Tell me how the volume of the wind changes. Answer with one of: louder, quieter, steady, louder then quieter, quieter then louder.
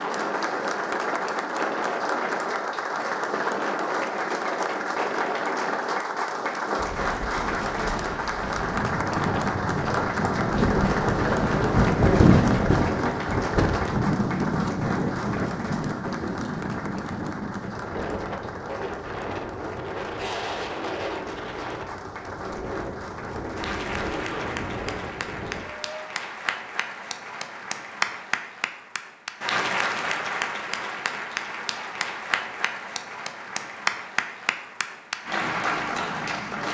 louder then quieter.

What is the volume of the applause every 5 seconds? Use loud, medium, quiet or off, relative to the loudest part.
loud, loud, loud, medium, medium, loud, loud, loud.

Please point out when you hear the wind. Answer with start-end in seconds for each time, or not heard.
0.0-26.1.